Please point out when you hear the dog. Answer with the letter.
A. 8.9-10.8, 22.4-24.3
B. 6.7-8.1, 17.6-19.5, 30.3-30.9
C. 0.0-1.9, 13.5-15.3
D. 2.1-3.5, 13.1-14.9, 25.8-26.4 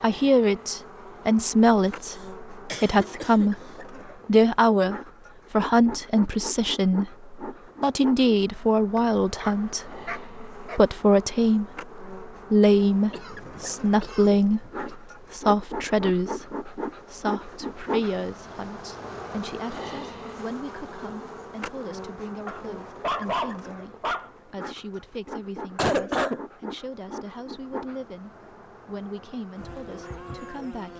A.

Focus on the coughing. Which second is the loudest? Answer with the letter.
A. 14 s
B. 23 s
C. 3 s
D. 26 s
D.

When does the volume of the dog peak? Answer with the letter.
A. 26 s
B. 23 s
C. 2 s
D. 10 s
B.